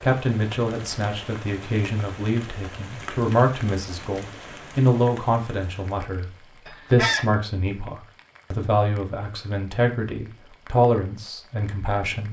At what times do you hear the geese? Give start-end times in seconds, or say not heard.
6.7-7.8.